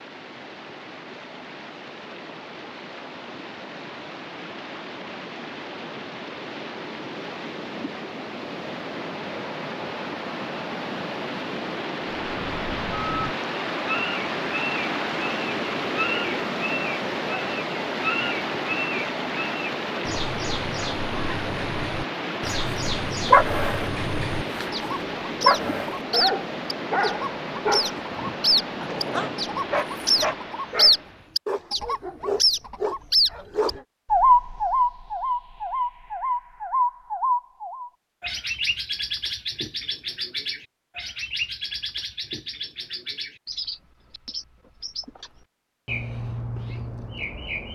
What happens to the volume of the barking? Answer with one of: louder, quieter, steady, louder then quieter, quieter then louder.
quieter.